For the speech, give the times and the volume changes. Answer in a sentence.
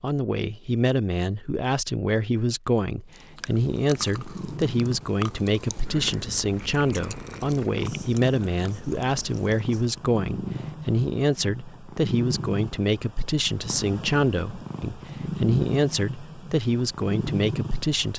You can hear the speech from 0.0 to 18.1 s, at a steady volume.